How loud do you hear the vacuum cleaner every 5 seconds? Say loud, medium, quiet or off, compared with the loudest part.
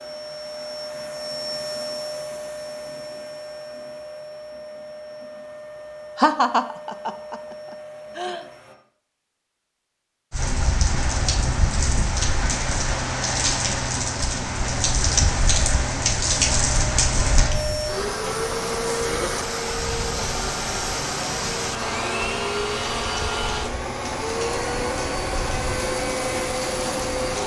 medium, quiet, off, loud, loud, loud.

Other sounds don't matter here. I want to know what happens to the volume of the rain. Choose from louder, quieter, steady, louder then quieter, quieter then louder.
quieter.